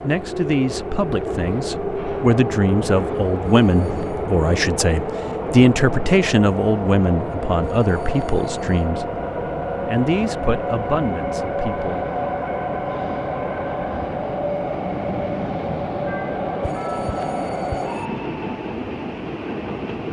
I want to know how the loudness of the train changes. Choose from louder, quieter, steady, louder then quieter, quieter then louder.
steady.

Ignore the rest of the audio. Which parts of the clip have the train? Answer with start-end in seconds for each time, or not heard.
0.0-20.0.